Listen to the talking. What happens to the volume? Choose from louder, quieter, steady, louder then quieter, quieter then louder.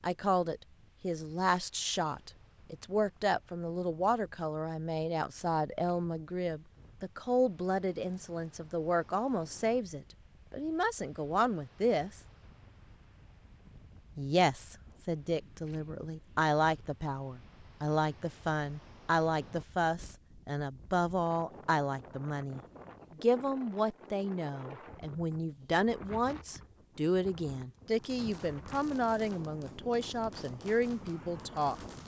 steady.